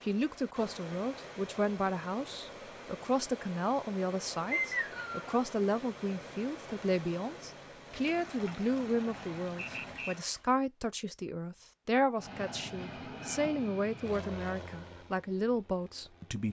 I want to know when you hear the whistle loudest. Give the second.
5 s.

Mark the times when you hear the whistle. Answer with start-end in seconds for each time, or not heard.
4.5-5.3, 9.6-10.2.